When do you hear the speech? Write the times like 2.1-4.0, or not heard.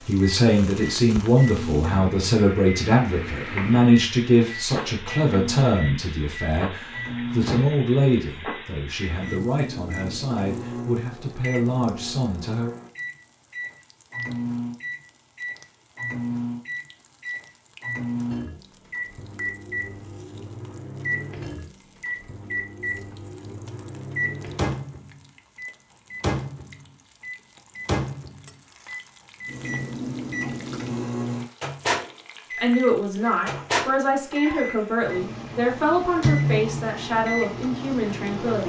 0.1-12.7, 32.5-38.6.